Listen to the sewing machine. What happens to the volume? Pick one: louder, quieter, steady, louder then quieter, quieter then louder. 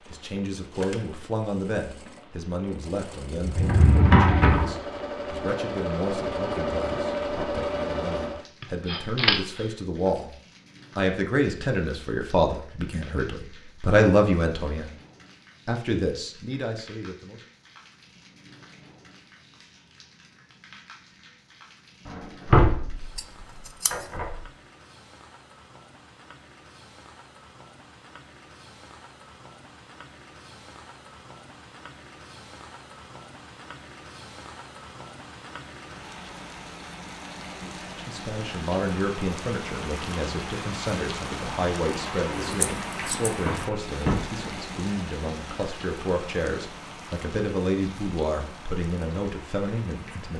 louder.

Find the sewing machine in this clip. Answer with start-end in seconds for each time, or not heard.
0.0-8.4.